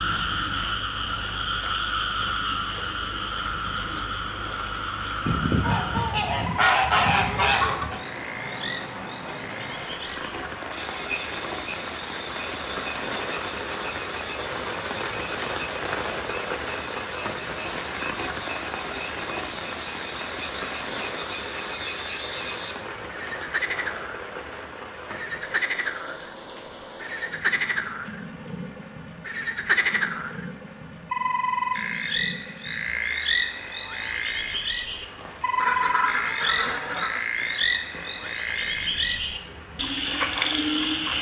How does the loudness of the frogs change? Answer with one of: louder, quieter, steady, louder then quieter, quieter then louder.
quieter then louder.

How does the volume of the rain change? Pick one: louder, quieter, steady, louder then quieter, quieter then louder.
louder then quieter.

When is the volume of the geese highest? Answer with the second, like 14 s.
7 s.